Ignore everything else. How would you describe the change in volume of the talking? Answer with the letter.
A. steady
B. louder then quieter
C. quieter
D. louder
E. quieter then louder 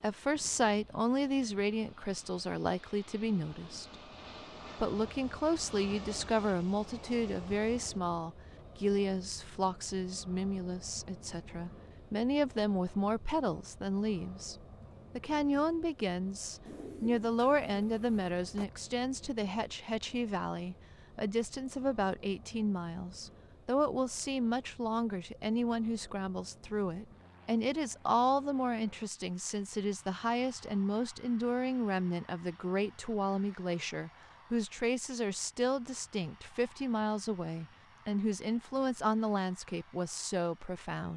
A.